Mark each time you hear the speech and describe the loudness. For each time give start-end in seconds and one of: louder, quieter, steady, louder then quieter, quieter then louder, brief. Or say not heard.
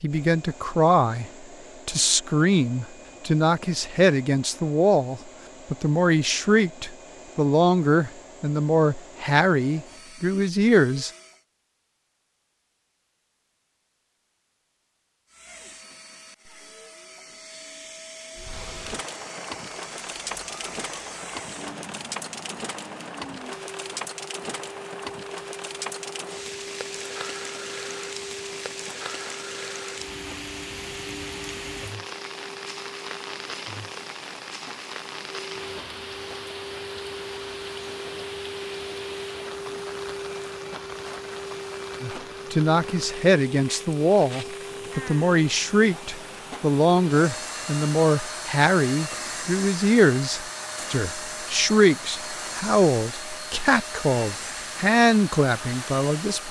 0.0-11.1 steady
42.0-56.4 steady.